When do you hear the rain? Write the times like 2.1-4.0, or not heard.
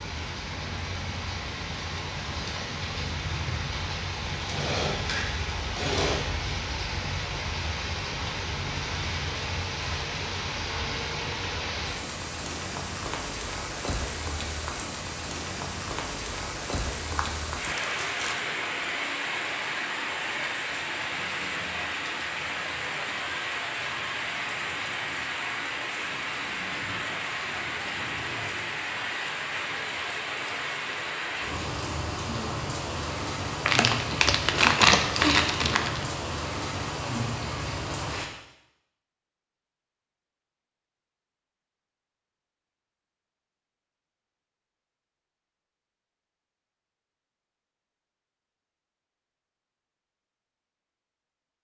0.0-38.3.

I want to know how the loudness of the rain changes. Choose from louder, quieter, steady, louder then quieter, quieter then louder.
steady.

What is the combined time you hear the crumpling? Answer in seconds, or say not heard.
4 s.